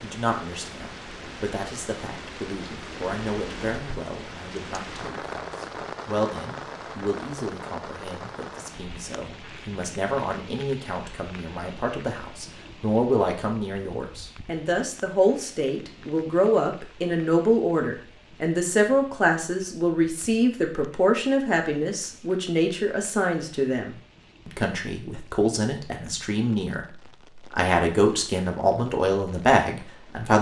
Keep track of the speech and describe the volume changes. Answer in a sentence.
The volume of the speech goes up.